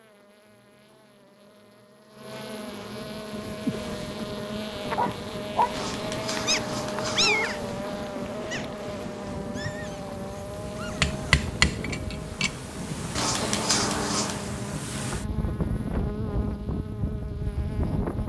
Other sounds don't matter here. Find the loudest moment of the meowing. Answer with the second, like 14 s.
14 s.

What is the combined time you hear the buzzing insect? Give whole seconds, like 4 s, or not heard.
18 s.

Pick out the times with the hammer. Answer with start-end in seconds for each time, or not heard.
11.0-12.6.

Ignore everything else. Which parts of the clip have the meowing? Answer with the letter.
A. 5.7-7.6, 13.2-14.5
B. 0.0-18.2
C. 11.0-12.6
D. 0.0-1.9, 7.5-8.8
A.